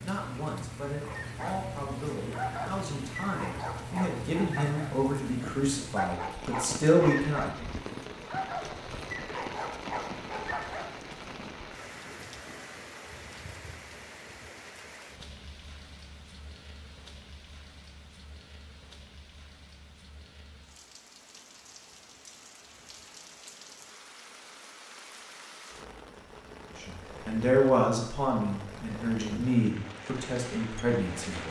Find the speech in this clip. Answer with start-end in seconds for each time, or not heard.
0.0-7.7, 26.8-31.4.